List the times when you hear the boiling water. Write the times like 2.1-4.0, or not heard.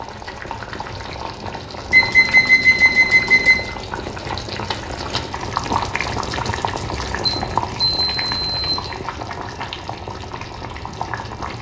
0.0-11.5.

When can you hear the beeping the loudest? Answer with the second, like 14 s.
3 s.